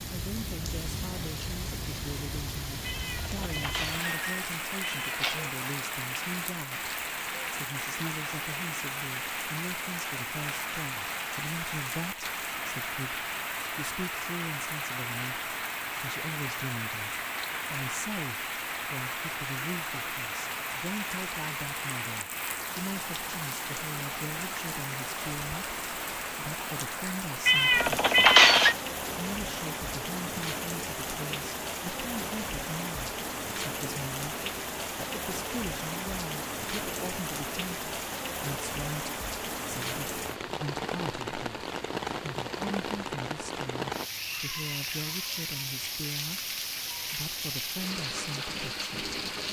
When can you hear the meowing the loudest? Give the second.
28 s.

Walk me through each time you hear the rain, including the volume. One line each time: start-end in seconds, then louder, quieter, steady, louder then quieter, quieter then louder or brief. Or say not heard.
0.0-49.4 steady.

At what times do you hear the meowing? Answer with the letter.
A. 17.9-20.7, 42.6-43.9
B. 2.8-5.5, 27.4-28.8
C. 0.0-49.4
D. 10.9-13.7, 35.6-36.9
B.